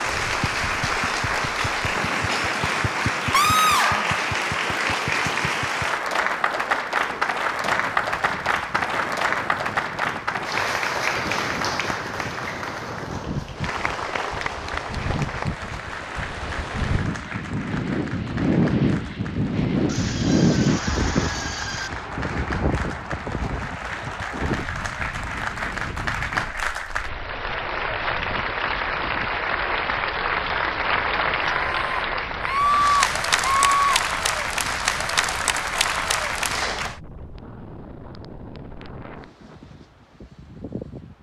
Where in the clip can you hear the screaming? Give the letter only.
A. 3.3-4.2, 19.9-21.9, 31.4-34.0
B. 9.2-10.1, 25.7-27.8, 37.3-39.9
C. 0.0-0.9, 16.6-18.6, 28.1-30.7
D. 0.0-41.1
A.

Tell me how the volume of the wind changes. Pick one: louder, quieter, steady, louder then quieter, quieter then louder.
louder then quieter.